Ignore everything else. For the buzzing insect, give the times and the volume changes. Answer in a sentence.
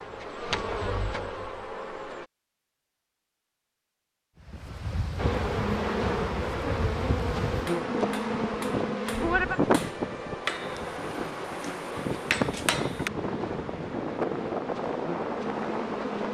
You can hear the buzzing insect briefly from 0.0 to 2.2 s; and from 5.2 to 16.2 s, getting quieter.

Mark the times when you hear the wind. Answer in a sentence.
You can hear the wind from 4.4 to 16.2 s.